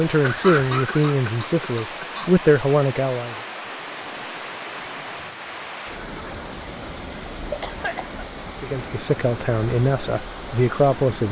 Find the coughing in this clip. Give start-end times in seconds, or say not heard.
0.2-2.3, 7.5-8.2.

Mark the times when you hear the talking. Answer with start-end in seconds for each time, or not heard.
0.0-3.4, 8.6-11.2.